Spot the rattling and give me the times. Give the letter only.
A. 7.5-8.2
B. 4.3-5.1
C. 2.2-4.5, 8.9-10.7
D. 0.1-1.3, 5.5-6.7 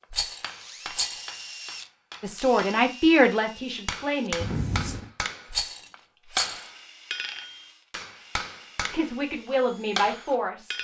D.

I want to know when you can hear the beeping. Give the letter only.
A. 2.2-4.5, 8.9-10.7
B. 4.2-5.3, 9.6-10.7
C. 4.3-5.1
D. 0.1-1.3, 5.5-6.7
C.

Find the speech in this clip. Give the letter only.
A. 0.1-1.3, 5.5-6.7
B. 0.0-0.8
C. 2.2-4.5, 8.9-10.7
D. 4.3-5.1
C.